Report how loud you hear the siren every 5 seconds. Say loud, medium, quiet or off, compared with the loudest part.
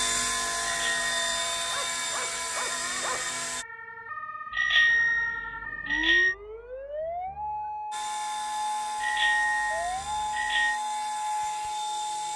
medium, loud, loud.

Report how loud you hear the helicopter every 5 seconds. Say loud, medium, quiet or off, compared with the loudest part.
loud, medium, medium.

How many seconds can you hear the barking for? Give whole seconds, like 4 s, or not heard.
2 s.